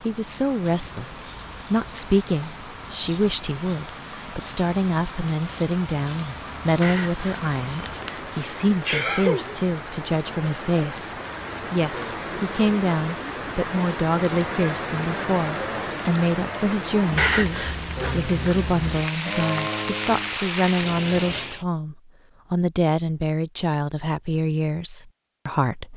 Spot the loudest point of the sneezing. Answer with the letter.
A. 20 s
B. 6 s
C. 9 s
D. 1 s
C.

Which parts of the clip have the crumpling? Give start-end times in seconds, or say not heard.
6.8-8.3, 17.1-17.8.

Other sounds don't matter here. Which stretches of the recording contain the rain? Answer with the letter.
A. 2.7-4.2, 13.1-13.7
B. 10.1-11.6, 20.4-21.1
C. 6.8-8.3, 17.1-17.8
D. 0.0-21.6
D.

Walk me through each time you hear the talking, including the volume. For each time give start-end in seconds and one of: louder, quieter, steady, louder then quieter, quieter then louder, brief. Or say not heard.
0.0-11.1 steady
11.7-25.9 steady.